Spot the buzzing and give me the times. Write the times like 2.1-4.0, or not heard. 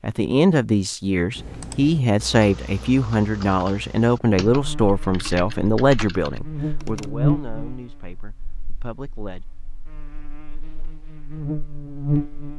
4.5-12.5.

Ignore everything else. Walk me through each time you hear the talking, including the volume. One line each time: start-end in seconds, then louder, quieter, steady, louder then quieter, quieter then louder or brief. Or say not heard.
0.0-9.4 quieter.